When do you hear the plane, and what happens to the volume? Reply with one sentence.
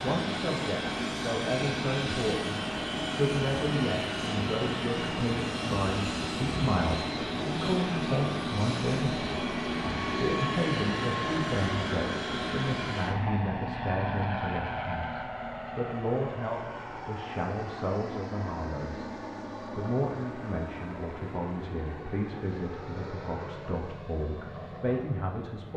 The plane can be heard from 0.0 to 25.7 s, getting quieter.